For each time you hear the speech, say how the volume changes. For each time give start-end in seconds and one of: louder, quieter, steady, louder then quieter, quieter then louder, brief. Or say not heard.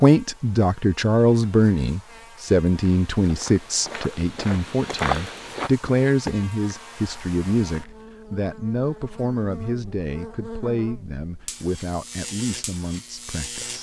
0.0-13.7 quieter.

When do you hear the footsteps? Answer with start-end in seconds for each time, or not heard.
2.7-8.1.